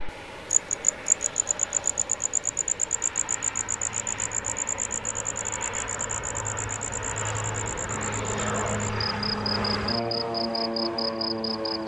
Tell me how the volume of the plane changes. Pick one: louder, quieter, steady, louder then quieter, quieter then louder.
louder.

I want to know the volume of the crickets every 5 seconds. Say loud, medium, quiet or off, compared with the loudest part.
loud, medium, medium.